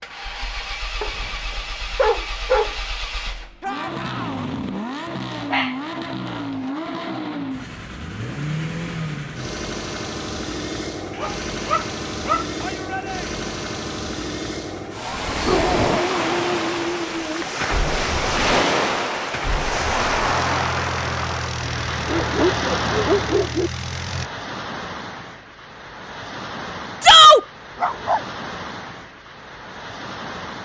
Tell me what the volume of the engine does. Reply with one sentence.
The loudness of the engine stays about the same.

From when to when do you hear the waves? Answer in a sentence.
You can hear the waves from 15.0 to 30.6 s.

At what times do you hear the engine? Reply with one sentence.
The engine can be heard from 0.0 to 24.3 s.